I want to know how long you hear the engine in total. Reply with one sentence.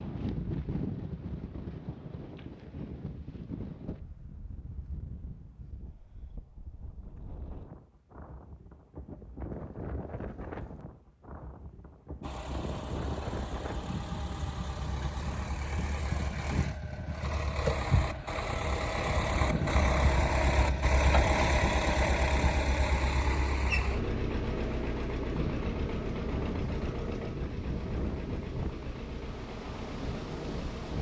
The engine can be heard for 19 seconds in total.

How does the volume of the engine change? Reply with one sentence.
The volume of the engine goes up, then down.